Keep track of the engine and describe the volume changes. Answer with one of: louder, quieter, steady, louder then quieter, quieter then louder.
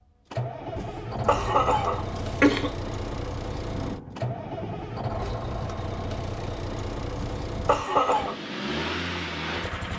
steady.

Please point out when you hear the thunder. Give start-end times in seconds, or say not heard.
3.6-5.0.